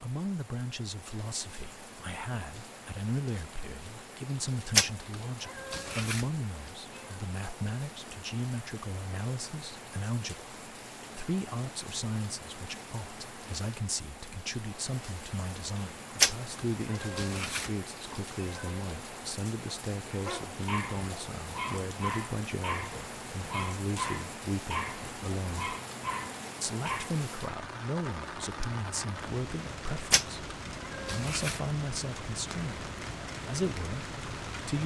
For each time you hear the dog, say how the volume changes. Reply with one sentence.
You can hear the dog from 20.1 to 27.1 s, at a steady volume.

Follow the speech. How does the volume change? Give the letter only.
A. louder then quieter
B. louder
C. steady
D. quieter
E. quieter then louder
C.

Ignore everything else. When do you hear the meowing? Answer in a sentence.
The meowing can be heard from 4.7 to 6.2 s, from 16.1 to 17.7 s, from 18.4 to 18.8 s and from 30.1 to 31.6 s.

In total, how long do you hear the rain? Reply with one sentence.
You can hear the rain for 35 seconds altogether.